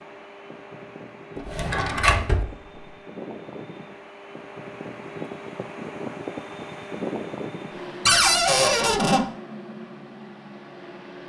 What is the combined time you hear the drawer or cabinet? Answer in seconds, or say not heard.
2 s.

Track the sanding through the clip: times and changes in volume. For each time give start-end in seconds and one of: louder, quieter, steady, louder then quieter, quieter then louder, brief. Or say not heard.
not heard.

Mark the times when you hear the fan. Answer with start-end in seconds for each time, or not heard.
0.0-11.2.